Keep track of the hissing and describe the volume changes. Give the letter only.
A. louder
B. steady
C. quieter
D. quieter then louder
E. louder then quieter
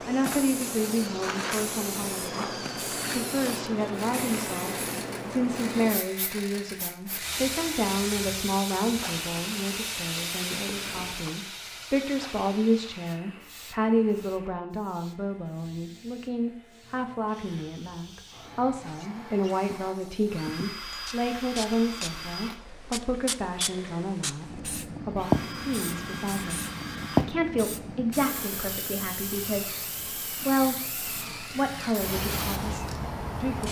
D.